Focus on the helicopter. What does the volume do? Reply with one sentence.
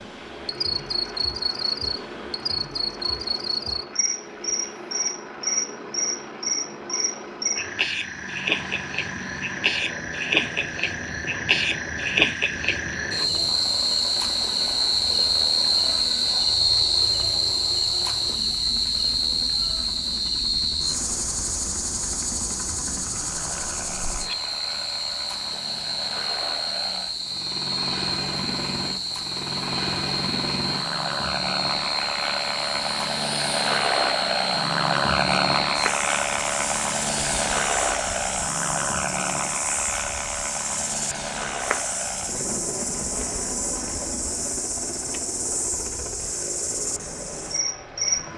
The volume of the helicopter goes up, then down.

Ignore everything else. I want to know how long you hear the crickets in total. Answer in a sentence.
The crickets can be heard for 48 seconds in total.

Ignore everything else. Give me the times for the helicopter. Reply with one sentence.
The helicopter can be heard from 0.0 to 48.3 s.